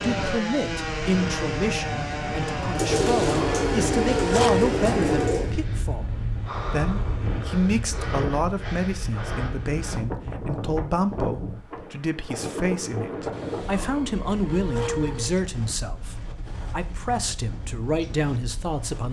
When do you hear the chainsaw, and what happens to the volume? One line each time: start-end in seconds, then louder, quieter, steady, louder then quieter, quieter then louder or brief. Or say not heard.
0.0-5.6 steady.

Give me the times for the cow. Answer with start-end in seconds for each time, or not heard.
2.9-4.8, 13.3-15.3.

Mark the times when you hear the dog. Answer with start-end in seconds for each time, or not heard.
not heard.